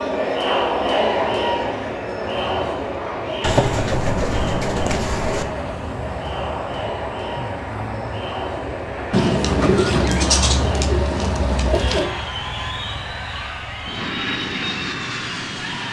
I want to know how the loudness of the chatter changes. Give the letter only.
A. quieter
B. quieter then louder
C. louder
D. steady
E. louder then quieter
A.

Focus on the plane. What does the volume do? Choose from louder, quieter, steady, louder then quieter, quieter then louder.
louder.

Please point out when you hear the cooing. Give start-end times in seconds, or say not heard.
3.4-5.5, 9.1-12.1.